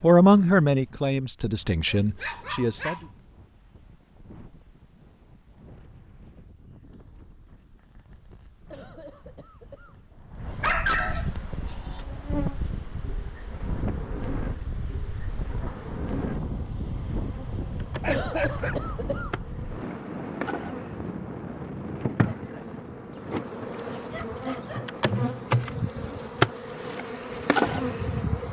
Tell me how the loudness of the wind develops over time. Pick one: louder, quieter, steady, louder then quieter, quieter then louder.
louder then quieter.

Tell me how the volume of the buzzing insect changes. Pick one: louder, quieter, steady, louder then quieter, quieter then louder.
louder.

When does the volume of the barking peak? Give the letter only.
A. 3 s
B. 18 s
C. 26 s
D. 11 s
D.